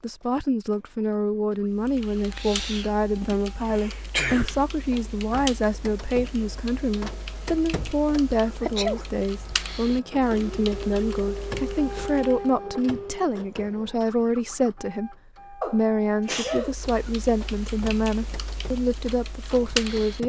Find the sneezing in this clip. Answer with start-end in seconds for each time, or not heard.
3.2-4.7, 8.6-9.1, 15.6-16.8.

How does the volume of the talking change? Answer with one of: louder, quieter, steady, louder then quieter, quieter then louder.
steady.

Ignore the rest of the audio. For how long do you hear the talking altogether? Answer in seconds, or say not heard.
20 s.